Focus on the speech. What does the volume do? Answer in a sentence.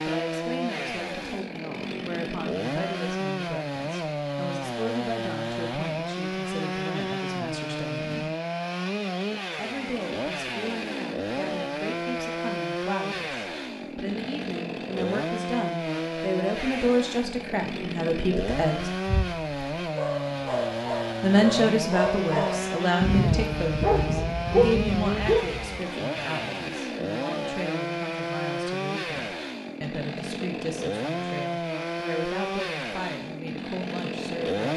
The loudness of the speech goes up, then down.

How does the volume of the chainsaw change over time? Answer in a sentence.
The loudness of the chainsaw stays about the same.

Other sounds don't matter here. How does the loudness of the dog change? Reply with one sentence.
The volume of the dog goes up.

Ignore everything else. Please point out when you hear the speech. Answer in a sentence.
You can hear the speech from 0.1 to 8.3 s, from 9.6 to 18.9 s and from 21.2 to 34.7 s.